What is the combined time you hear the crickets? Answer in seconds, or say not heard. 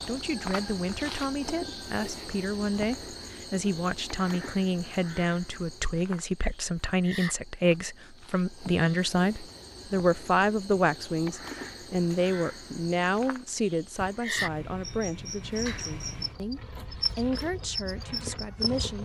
19 s.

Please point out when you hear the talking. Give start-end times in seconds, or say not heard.
0.0-19.0.